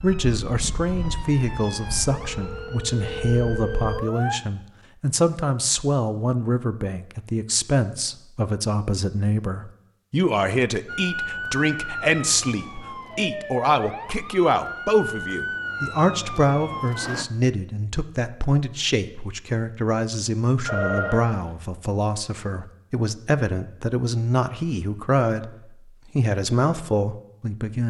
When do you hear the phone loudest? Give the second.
21 s.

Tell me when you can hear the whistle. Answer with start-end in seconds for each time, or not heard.
not heard.